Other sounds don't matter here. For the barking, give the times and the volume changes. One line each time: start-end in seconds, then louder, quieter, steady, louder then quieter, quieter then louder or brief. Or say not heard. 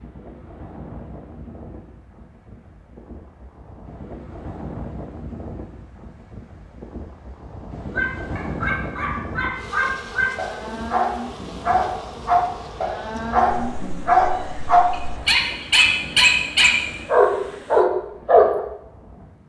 8.0-18.6 louder.